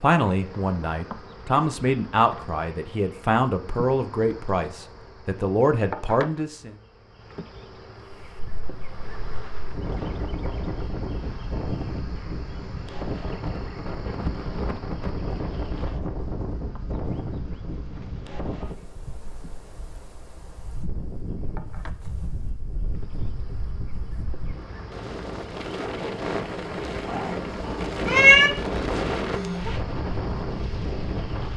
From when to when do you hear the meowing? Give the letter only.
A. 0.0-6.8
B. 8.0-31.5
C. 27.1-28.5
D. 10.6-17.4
C.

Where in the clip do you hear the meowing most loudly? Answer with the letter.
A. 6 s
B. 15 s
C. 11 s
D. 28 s
D.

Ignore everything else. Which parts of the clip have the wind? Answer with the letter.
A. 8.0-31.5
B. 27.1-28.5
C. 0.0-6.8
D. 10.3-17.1
A.